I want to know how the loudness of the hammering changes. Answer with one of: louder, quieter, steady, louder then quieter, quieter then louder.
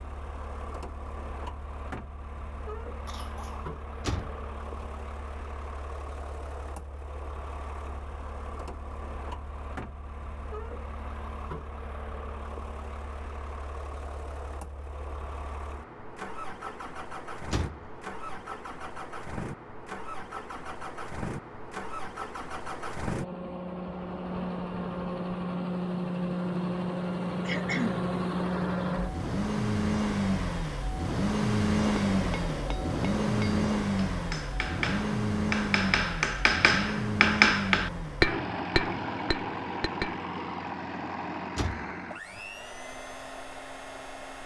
louder then quieter.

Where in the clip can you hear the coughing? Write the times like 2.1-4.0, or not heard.
3.0-3.6, 27.4-28.1.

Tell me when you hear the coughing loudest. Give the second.
28 s.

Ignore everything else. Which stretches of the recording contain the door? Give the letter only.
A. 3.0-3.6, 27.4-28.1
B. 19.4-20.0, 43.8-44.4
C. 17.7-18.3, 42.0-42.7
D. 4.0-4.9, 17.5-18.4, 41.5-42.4
D.